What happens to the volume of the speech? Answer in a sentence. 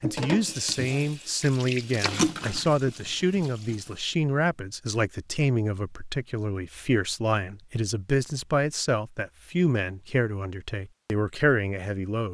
The loudness of the speech stays about the same.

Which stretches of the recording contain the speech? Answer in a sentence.
The speech can be heard from 0.0 to 12.2 s.